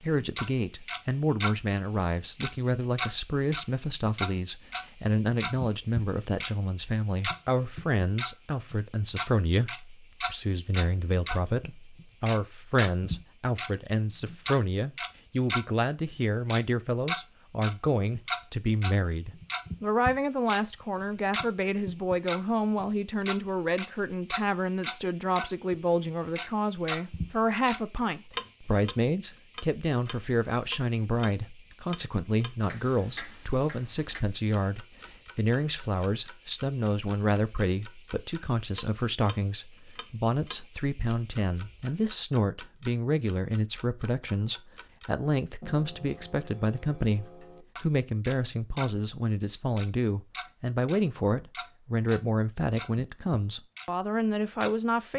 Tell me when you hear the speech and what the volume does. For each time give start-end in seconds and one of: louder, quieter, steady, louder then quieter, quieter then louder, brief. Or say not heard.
0.0-55.1 steady.